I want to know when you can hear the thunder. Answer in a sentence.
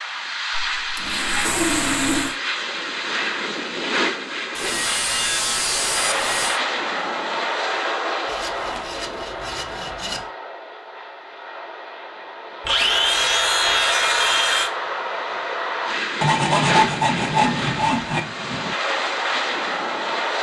You can hear the thunder from 16.9 to 18.8 s.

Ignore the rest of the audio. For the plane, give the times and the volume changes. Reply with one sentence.
The plane can be heard from 0.0 to 20.3 s, getting quieter then louder.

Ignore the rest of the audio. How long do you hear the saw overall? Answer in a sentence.
You can hear the saw for 10 seconds altogether.